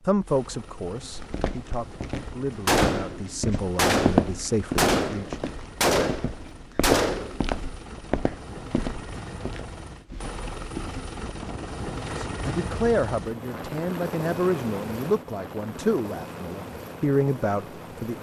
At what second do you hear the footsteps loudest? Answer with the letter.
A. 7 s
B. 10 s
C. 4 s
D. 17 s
C.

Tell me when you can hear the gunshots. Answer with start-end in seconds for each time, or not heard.
2.6-7.5.